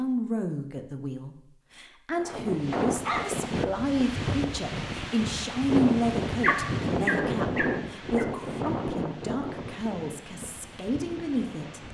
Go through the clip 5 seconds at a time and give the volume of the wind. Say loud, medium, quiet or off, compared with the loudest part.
loud, loud, quiet.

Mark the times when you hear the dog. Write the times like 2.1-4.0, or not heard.
2.7-4.0, 6.4-8.2.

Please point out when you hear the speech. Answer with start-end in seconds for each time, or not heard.
0.0-11.8.